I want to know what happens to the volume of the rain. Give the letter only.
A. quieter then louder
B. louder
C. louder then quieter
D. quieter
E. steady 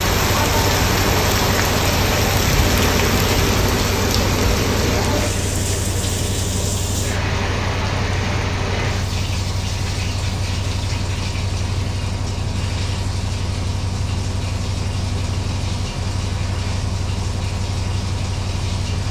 D.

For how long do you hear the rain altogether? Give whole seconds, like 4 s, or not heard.
19 s.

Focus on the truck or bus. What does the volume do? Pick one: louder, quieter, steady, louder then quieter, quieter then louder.
steady.